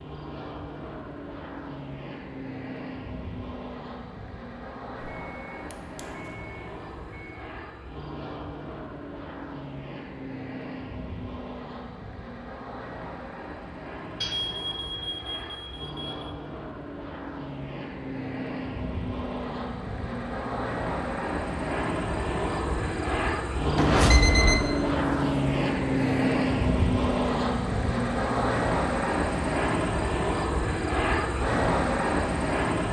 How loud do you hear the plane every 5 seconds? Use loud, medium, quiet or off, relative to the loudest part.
quiet, quiet, quiet, medium, loud, loud, loud.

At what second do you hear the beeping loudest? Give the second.
24 s.